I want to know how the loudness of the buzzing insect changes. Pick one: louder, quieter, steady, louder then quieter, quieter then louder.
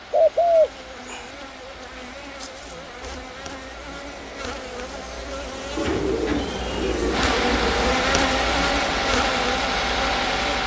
louder.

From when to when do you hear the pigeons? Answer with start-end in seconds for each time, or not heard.
0.1-1.2, 5.8-7.7.